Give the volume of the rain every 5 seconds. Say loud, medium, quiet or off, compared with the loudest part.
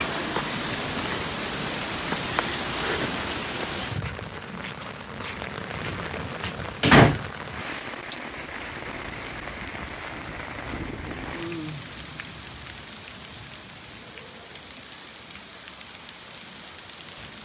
loud, medium, medium, quiet.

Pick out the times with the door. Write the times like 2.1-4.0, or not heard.
6.8-8.2.